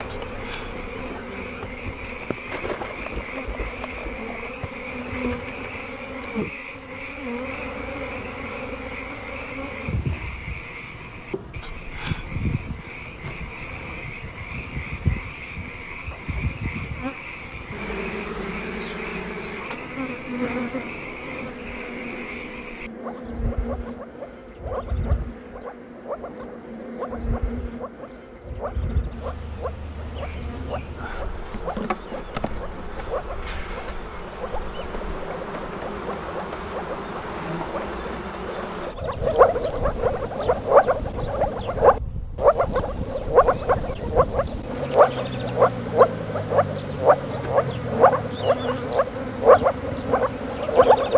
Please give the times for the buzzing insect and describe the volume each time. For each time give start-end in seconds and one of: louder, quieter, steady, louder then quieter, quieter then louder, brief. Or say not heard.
0.0-51.1 steady.